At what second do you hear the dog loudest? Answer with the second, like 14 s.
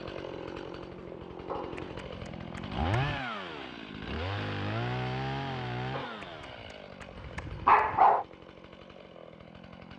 8 s.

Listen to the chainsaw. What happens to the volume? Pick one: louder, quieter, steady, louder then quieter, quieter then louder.
louder then quieter.